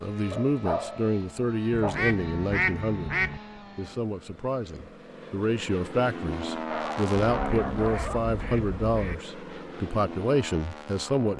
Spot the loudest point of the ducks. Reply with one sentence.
The loudest moment of the ducks is at 3 seconds.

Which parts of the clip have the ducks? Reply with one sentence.
You can hear the ducks from 1.7 to 3.4 s and from 7.2 to 9.2 s.